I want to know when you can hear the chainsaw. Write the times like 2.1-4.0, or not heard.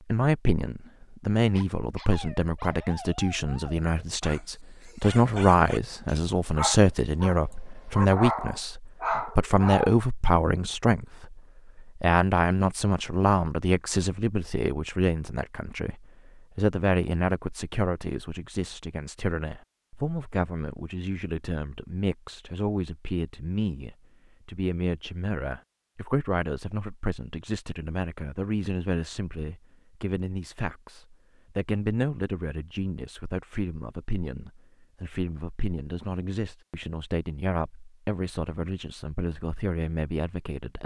not heard.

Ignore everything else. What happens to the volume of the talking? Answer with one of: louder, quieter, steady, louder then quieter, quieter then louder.
quieter.